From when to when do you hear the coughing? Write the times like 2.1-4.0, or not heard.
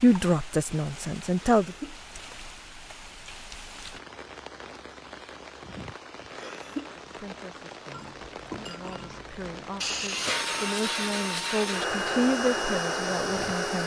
1.5-1.9, 6.3-6.9, 9.8-10.5.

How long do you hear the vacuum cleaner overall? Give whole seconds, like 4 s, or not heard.
4 s.